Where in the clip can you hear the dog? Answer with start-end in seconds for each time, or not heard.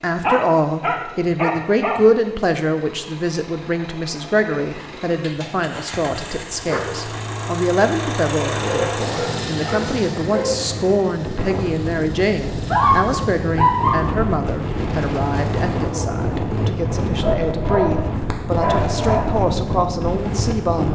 0.2-2.0, 5.2-6.8, 8.6-10.6, 12.7-14.2, 17.2-19.4.